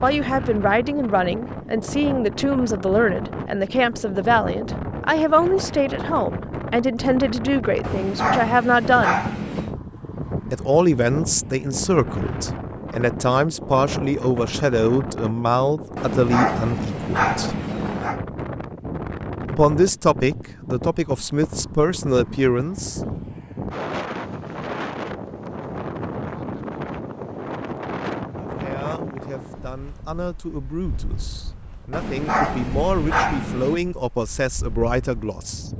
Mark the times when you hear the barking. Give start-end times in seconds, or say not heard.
7.8-9.8, 15.9-18.2, 31.9-33.8.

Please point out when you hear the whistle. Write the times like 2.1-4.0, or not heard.
not heard.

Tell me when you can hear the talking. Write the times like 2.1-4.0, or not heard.
0.0-9.2, 10.5-17.6, 19.5-23.0, 28.4-35.7.